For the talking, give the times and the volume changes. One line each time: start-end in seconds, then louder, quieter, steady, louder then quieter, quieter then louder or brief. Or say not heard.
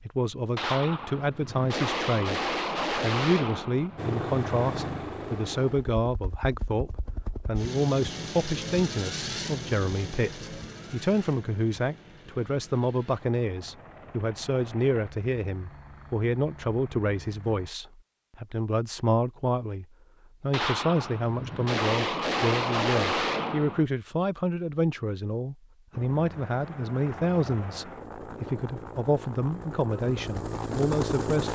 0.0-31.5 steady.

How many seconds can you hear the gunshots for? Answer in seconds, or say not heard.
7 s.